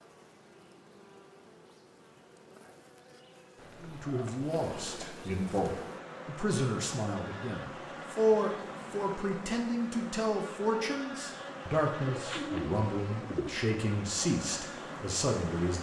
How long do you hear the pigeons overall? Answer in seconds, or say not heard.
3 s.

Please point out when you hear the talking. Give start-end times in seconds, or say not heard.
3.8-15.7.